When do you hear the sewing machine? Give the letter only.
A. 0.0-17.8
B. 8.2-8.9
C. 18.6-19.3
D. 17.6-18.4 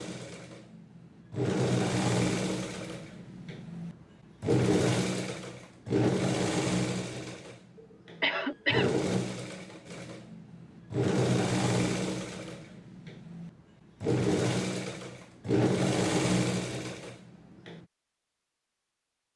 A.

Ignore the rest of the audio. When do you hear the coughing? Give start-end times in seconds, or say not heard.
8.2-8.9.